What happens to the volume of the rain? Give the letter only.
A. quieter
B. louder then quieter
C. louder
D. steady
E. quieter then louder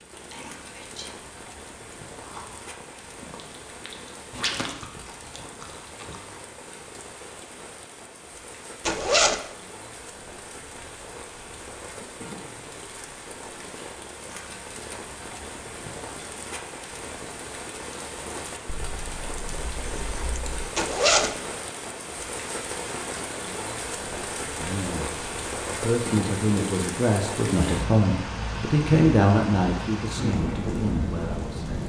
C.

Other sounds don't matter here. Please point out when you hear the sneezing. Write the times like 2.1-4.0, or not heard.
not heard.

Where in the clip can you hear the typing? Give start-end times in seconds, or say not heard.
18.6-20.7.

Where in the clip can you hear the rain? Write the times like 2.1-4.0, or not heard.
0.0-31.8.